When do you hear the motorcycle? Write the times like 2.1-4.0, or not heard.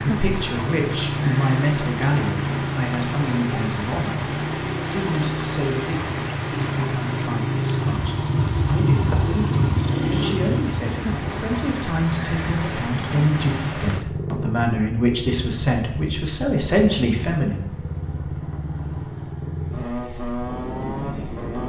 0.0-21.6.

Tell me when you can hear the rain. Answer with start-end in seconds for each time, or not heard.
0.0-14.1.